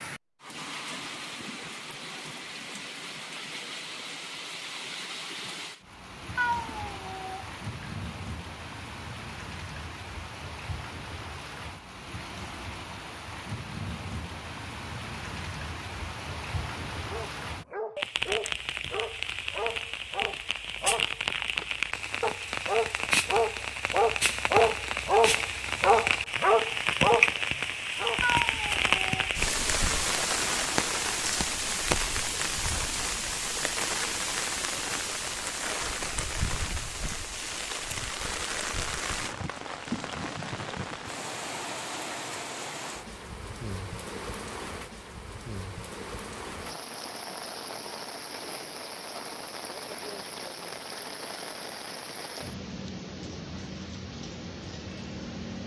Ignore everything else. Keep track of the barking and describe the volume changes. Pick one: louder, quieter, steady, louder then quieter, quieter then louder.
louder.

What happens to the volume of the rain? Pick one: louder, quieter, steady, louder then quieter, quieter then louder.
louder then quieter.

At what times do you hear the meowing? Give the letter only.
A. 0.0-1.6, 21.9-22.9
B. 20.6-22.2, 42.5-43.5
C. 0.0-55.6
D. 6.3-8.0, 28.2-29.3
D.